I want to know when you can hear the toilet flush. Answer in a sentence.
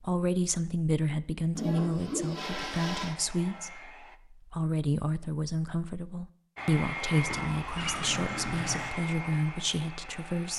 You can hear the toilet flush from 1.6 to 3.1 s and from 7.2 to 8.9 s.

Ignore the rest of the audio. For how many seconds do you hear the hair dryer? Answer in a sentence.
You can hear the hair dryer for 6 seconds altogether.